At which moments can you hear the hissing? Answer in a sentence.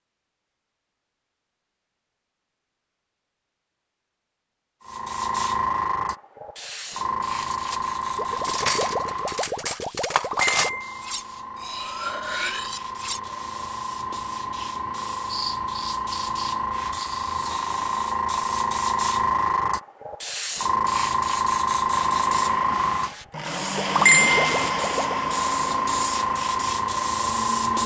The hissing can be heard from 4.8 to 27.8 s.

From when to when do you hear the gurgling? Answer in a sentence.
You can hear the gurgling from 8.2 to 10.8 s and from 23.9 to 25.2 s.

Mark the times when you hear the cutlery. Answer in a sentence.
You can hear the cutlery from 7.3 to 13.2 s.